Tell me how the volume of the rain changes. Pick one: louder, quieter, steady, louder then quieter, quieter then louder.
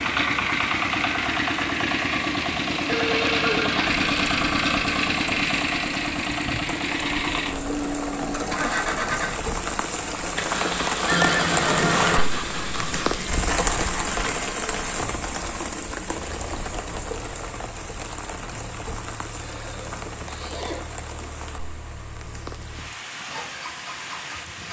louder then quieter.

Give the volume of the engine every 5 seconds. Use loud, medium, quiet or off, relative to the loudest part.
loud, loud, medium, quiet, quiet.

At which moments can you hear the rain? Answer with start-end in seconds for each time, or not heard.
0.0-24.6.